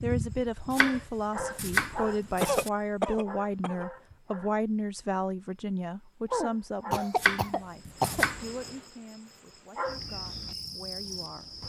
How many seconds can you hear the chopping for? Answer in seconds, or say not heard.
3 s.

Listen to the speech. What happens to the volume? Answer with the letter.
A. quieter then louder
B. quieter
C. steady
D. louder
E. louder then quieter
B.